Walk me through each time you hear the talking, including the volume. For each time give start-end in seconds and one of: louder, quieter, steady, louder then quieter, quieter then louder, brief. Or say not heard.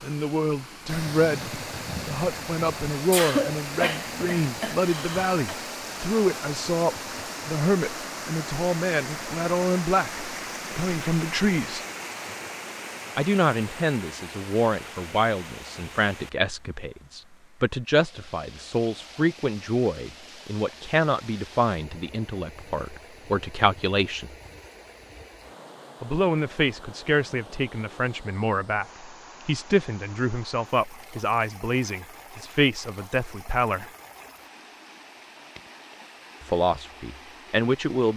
0.0-11.8 steady
13.2-24.4 steady
26.0-33.9 steady
36.4-38.1 brief.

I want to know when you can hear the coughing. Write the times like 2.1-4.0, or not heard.
3.1-5.5.